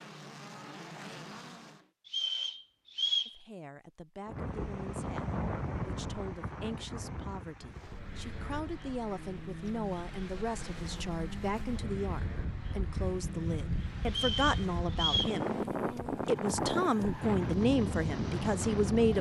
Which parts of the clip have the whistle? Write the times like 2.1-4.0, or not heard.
2.0-3.4, 14.1-15.4.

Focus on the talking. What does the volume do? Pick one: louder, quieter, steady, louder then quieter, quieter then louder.
louder.